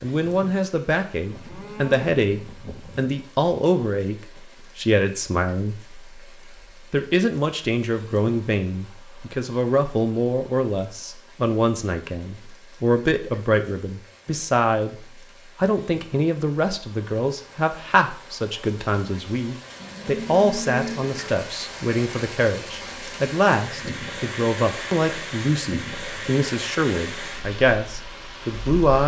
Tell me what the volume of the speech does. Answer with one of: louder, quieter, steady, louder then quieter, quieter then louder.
steady.